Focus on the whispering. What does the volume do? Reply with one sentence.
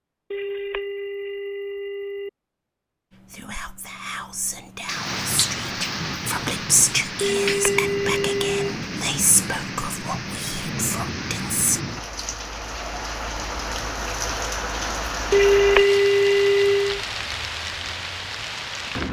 The loudness of the whispering goes up, then down.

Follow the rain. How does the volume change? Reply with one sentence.
The loudness of the rain stays about the same.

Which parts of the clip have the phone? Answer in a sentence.
The phone can be heard from 0.3 to 2.3 s, from 7.2 to 8.8 s and from 15.3 to 17.0 s.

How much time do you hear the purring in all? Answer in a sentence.
You can't hear the purring here.